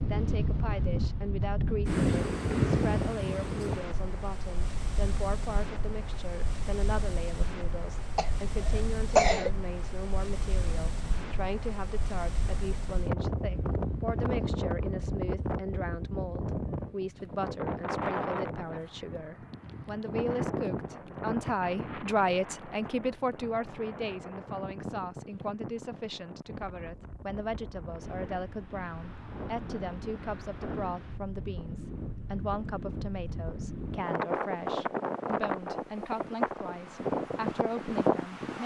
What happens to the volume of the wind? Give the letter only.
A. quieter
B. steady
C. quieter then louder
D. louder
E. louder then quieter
C.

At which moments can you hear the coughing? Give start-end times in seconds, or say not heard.
8.2-9.5.